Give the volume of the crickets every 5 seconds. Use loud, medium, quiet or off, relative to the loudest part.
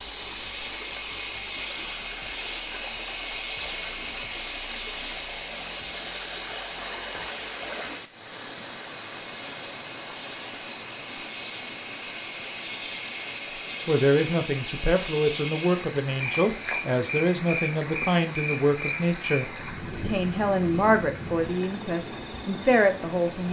loud, medium, loud, loud, loud.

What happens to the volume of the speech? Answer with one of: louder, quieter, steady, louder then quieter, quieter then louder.
steady.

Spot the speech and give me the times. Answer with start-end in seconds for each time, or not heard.
13.8-23.4.